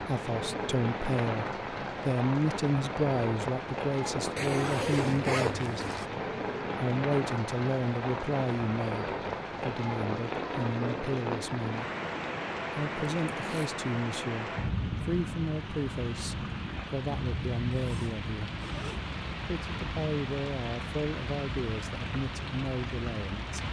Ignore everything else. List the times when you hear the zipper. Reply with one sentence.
You can hear the zipper from 4.3 to 6.0 s, from 13.2 to 13.7 s and from 17.7 to 19.1 s.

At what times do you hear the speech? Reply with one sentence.
You can hear the speech from 0.0 to 5.8 s, from 6.8 to 11.9 s, from 12.8 to 18.6 s and from 19.4 to 23.6 s.